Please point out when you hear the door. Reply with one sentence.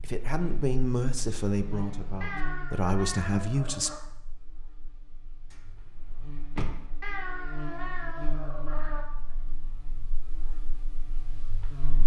You can hear the door from 5.5 to 6.8 s.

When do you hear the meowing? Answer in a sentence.
You can hear the meowing from 2.2 to 4.0 s and from 7.0 to 9.1 s.